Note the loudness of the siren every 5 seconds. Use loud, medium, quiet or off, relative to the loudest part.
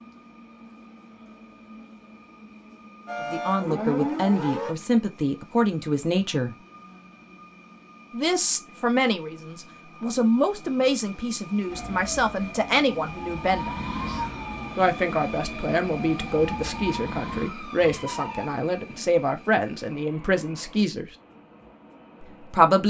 loud, off, medium, medium, off.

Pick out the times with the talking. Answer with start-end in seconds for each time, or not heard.
3.3-6.5, 8.1-13.7, 14.8-21.1, 22.2-22.8.